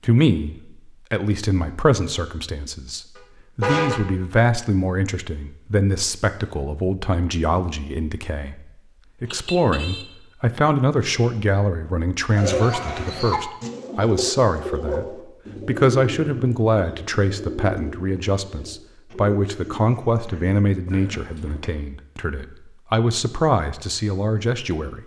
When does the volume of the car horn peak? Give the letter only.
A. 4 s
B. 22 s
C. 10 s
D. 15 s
A.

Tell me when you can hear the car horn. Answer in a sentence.
The car horn can be heard from 3.1 to 4.0 s, from 9.2 to 10.1 s and from 20.9 to 21.8 s.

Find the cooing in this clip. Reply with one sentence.
The cooing can be heard from 12.3 to 21.6 s.